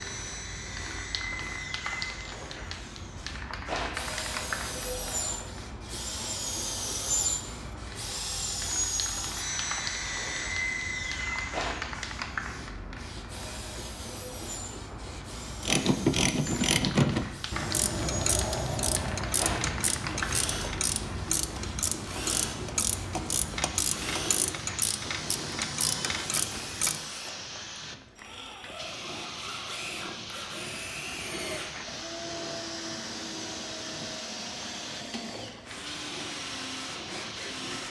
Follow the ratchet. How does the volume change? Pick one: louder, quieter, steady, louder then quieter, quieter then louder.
quieter.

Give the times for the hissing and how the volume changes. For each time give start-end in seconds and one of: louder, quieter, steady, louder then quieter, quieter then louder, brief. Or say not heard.
0.0-37.8 steady.